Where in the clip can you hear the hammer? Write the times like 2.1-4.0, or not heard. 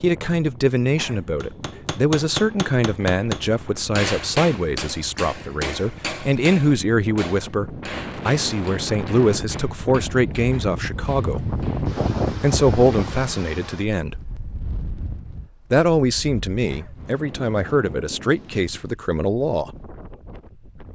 1.4-11.9.